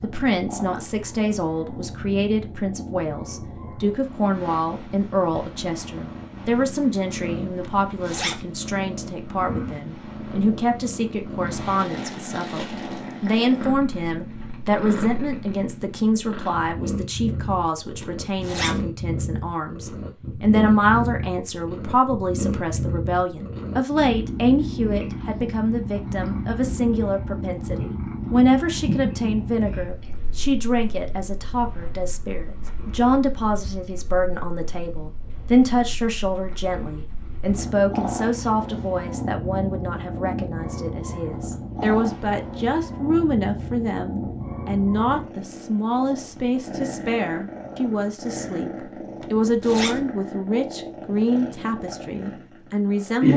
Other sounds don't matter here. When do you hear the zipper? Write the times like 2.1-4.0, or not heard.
7.6-8.4, 18.0-18.9, 49.2-50.0.